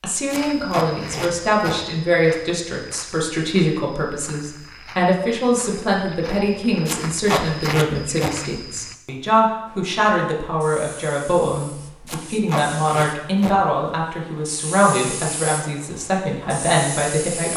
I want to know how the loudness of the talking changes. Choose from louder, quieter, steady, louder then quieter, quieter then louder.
steady.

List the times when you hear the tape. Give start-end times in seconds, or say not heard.
0.2-1.8, 6.8-8.3, 12.1-13.6.